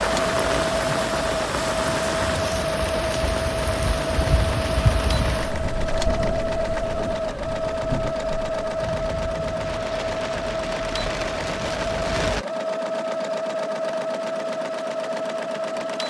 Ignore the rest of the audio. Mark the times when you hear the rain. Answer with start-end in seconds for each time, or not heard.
0.0-12.4.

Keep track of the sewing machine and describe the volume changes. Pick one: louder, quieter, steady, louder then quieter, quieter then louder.
steady.